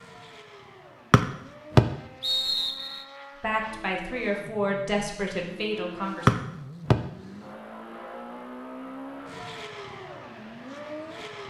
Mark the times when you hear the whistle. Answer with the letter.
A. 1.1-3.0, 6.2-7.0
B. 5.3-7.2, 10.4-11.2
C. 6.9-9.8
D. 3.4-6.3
A.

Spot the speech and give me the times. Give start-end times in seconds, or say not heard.
3.4-6.3.